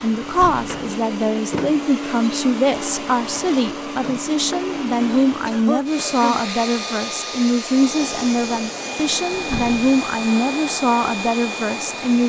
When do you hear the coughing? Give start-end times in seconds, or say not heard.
5.0-6.4.